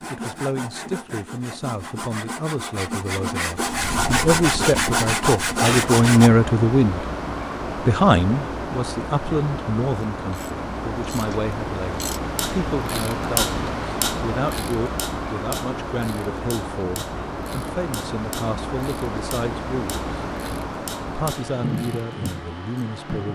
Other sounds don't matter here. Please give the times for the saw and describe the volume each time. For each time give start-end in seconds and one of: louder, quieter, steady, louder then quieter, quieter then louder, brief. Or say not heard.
0.0-6.3 louder.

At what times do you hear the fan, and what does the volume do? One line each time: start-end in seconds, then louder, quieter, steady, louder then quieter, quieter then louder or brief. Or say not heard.
3.6-23.3 steady.